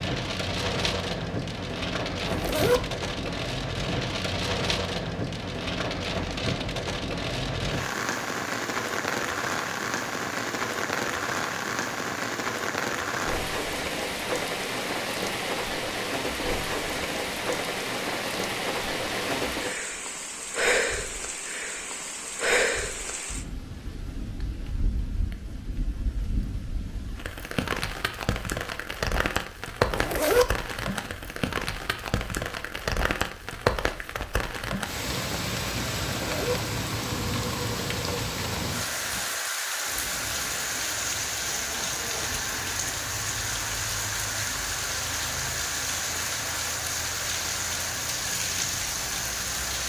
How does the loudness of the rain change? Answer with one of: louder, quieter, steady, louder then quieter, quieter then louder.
steady.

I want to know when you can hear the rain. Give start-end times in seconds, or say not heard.
0.0-49.8.